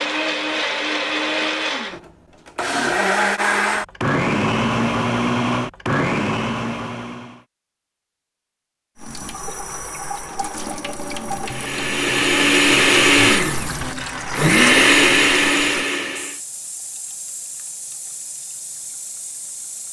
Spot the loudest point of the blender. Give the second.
15 s.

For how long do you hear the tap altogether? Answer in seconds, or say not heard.
11 s.